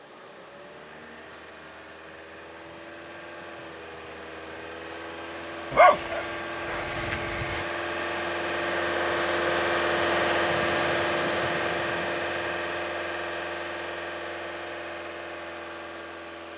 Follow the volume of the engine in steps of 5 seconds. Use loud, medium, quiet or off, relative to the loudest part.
quiet, loud, loud, medium.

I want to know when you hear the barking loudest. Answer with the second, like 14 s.
6 s.